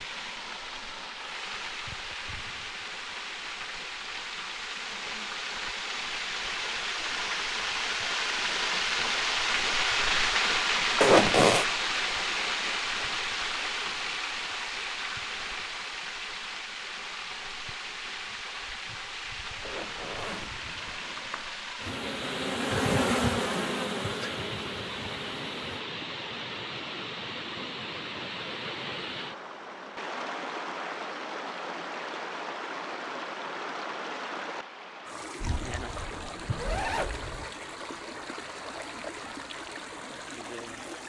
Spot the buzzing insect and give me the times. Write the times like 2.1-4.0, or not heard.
21.8-25.9.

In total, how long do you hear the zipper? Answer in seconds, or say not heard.
5 s.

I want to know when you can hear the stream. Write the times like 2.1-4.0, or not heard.
0.0-41.0.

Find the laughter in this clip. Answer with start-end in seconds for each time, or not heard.
not heard.